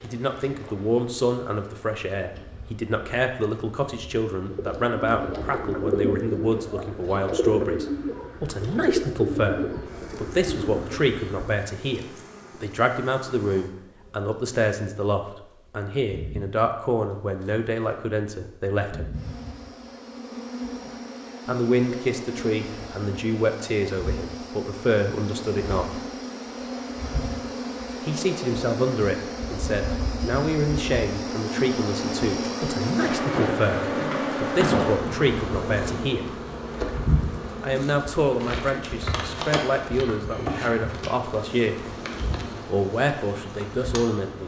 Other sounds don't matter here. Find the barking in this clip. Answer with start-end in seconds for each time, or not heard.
not heard.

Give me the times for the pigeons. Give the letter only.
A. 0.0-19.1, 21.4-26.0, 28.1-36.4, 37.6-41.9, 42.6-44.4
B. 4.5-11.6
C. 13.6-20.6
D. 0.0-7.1
B.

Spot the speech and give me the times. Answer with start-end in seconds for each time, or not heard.
0.0-19.1, 21.4-26.0, 28.1-36.4, 37.6-41.9, 42.6-44.4.